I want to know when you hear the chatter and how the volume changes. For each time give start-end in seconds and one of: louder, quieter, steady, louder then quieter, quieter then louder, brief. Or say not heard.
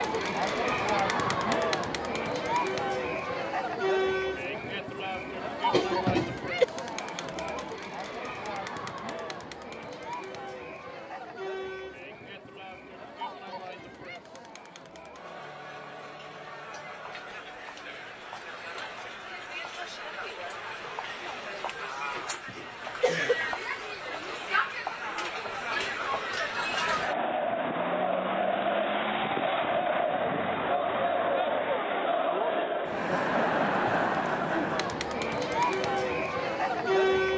0.0-37.3 quieter then louder.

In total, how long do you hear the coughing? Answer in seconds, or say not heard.
2 s.